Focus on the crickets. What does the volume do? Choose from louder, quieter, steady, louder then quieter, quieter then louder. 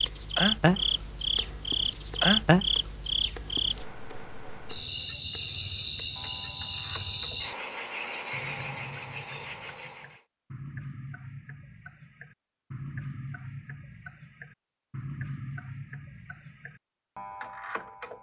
steady.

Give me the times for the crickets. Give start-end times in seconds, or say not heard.
0.0-10.2.